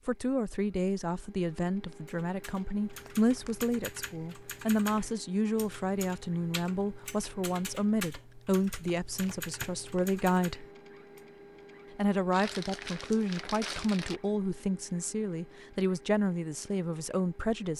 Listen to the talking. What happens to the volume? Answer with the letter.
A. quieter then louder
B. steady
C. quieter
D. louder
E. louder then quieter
B.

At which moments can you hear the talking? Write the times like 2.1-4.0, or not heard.
0.1-10.7, 11.9-17.7.